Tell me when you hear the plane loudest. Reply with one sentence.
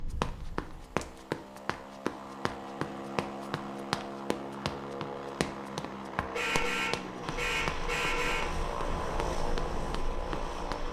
The volume of the plane peaks at 9 seconds.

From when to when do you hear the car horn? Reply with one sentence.
You can hear the car horn from 6.3 to 8.4 s.